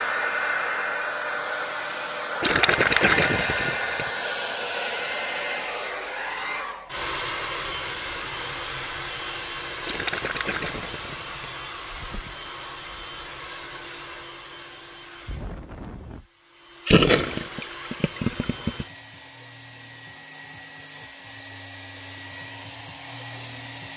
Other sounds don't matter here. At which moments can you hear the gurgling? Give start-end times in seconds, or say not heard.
2.4-4.0, 9.8-11.3, 16.9-18.9.